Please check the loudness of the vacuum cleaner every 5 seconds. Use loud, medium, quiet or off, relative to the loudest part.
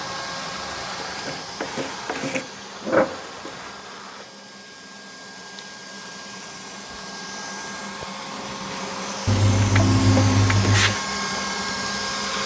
medium, medium, loud.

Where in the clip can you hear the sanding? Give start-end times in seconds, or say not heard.
1.0-3.7, 9.2-11.0.